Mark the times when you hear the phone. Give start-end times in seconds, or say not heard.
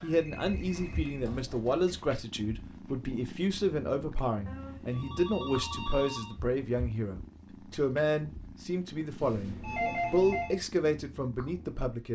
0.1-2.0, 4.5-6.3, 9.2-10.6.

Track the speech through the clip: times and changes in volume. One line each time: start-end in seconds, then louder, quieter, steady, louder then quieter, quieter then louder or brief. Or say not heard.
0.0-12.1 steady.